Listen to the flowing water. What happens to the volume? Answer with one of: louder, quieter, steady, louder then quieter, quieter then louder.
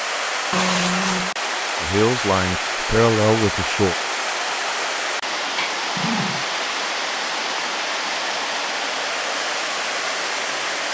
steady.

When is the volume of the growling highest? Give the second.
1 s.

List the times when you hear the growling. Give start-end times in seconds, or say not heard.
0.5-1.4, 5.8-6.5.